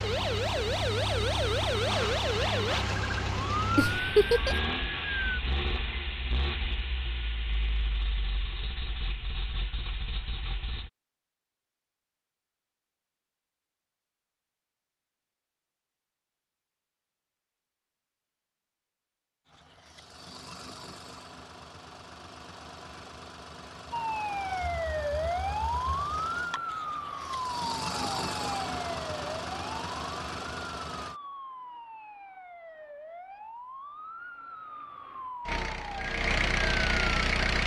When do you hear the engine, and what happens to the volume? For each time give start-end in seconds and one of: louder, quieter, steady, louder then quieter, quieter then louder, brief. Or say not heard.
0.0-10.9 quieter
19.4-31.2 louder
35.5-37.6 brief.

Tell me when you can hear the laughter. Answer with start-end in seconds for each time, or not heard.
3.8-4.5.